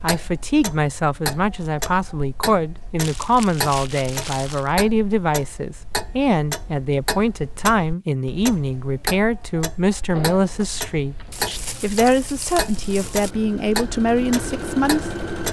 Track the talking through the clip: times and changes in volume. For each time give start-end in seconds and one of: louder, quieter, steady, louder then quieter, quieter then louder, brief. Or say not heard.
0.0-15.1 steady.